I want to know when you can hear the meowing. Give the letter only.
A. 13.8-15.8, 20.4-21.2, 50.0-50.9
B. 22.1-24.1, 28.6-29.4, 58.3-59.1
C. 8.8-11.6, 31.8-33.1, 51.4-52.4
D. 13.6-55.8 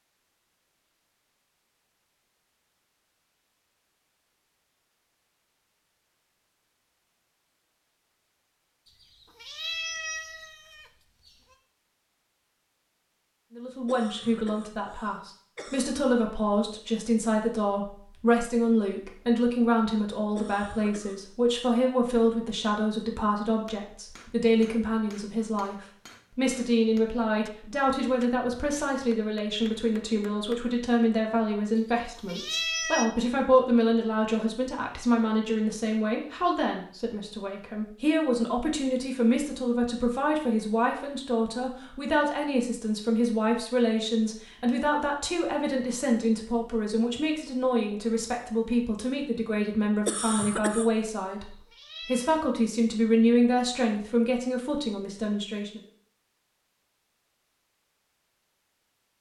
C.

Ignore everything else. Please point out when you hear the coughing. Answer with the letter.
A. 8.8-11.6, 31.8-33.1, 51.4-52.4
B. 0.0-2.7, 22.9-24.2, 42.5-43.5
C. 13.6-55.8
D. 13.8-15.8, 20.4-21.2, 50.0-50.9
D.